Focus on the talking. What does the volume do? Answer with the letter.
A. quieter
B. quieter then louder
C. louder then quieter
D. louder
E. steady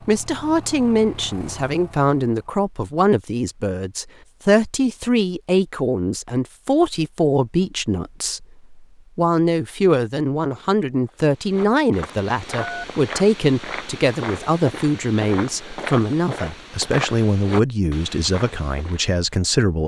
E.